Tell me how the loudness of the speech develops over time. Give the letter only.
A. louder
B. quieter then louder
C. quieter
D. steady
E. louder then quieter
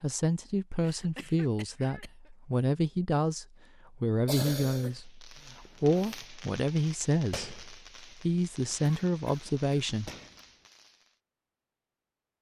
D.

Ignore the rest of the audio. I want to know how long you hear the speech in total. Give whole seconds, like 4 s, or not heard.
10 s.